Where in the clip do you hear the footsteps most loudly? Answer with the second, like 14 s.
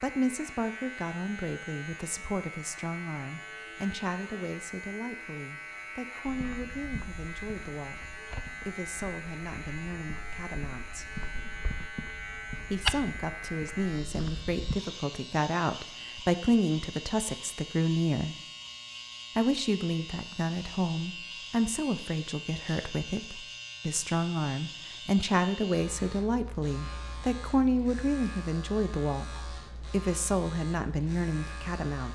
13 s.